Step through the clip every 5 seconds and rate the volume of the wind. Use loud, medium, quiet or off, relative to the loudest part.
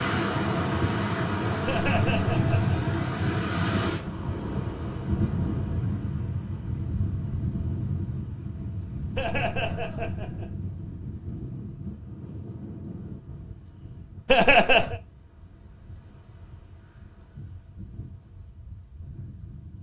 loud, medium, quiet, quiet.